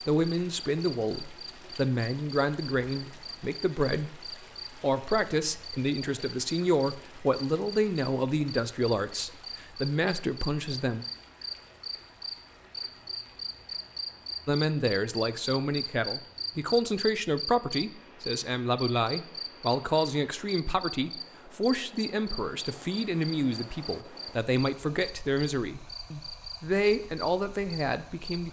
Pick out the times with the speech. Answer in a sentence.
You can hear the speech from 0.1 to 11.1 s and from 14.4 to 28.4 s.